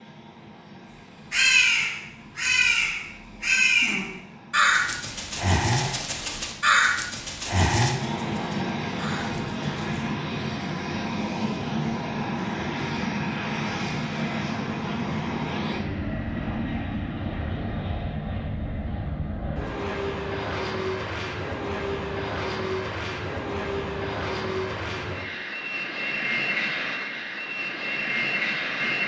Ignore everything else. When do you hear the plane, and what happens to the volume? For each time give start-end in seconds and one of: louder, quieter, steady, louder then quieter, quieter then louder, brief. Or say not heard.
0.0-29.0 louder.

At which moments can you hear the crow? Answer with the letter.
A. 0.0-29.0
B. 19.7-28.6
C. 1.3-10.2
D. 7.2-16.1
C.